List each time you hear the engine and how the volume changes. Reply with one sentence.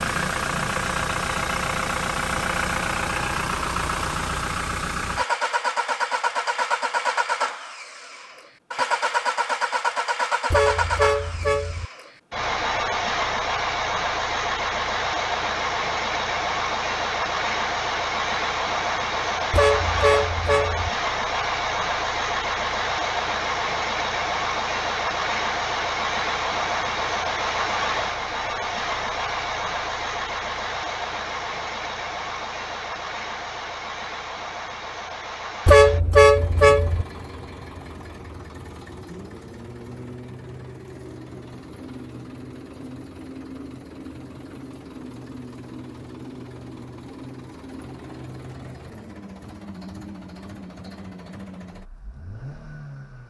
The engine can be heard from 0.0 to 53.2 s, getting quieter.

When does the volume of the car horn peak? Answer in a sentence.
The loudest moment of the car horn is at 36 seconds.